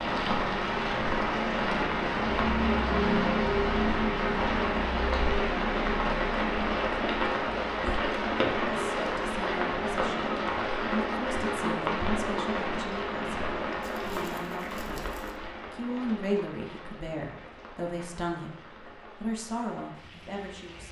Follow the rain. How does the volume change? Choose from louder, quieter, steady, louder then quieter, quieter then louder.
quieter.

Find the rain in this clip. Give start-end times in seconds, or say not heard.
0.0-20.8.